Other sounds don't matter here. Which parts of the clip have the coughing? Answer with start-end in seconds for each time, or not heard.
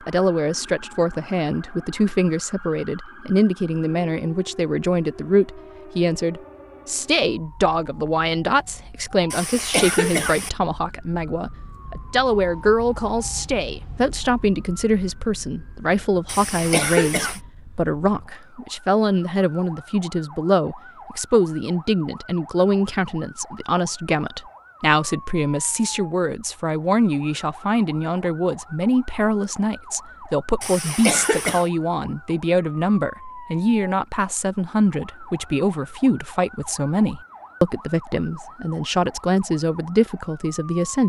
9.3-10.5, 16.2-17.4, 30.6-31.6.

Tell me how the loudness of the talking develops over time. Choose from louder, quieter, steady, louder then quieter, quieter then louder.
steady.